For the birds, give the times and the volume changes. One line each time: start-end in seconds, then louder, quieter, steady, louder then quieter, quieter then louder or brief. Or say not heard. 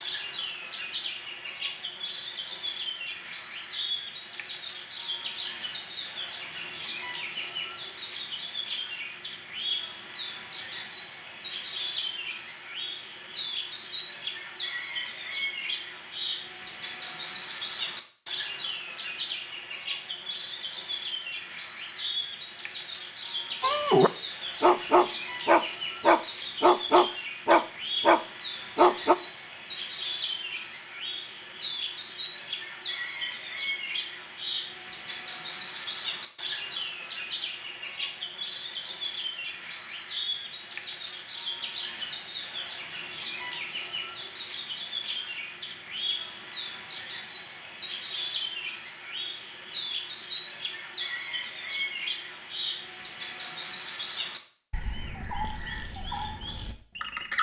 0.0-57.3 steady.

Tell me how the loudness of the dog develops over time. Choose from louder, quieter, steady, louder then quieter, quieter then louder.
steady.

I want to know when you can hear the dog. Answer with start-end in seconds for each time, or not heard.
23.6-29.1.